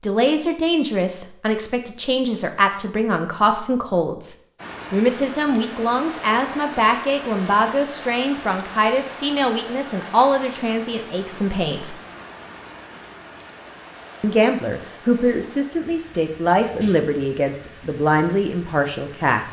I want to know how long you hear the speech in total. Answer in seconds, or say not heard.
17 s.